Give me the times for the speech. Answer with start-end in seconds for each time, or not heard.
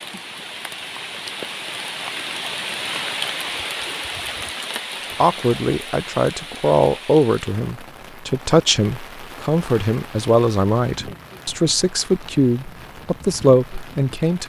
5.2-14.4.